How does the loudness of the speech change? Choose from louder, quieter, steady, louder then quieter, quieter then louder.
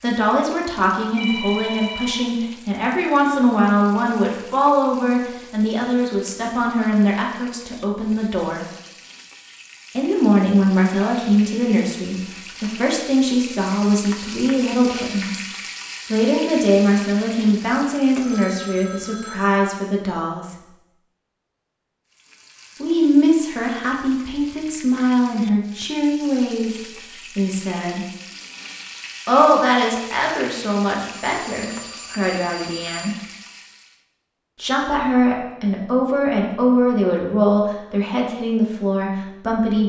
steady.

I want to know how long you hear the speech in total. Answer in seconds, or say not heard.
33 s.